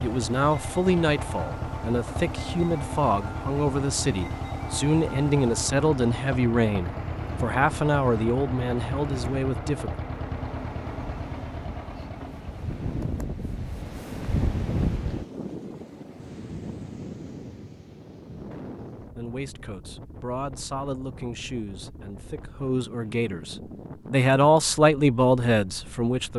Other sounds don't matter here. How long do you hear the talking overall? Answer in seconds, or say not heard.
17 s.